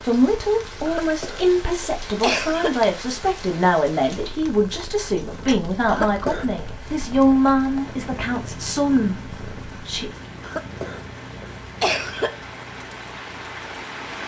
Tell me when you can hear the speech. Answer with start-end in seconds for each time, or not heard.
0.1-10.1.